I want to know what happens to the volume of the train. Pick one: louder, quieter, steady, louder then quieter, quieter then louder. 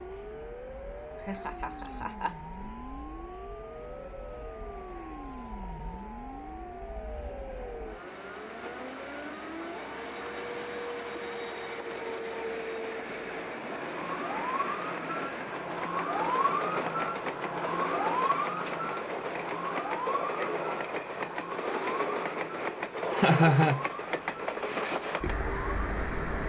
louder.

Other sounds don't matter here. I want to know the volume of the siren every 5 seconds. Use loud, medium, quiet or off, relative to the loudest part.
medium, medium, medium, loud, medium, off.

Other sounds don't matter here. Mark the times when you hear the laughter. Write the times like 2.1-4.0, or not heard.
1.2-2.4, 23.1-23.9.